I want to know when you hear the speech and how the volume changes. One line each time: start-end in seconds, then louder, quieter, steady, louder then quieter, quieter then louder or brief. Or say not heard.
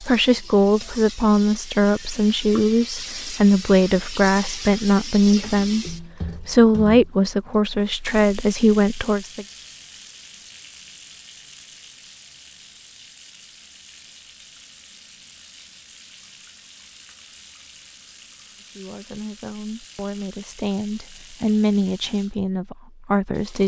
0.0-9.4 steady
18.8-23.6 louder.